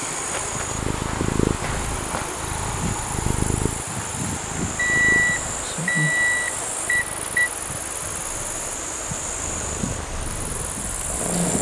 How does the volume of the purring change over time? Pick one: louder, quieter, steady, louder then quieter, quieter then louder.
quieter then louder.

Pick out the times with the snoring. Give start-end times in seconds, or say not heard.
not heard.